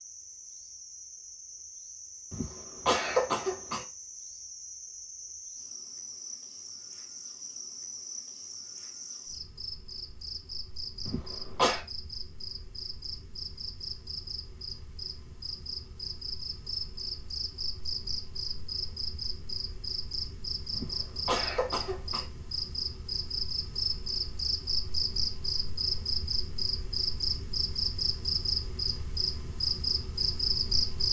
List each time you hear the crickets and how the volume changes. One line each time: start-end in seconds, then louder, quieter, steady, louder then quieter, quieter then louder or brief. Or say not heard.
0.0-31.0 louder.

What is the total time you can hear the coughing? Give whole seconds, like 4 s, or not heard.
4 s.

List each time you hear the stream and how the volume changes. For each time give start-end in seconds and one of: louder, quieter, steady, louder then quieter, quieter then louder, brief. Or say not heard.
not heard.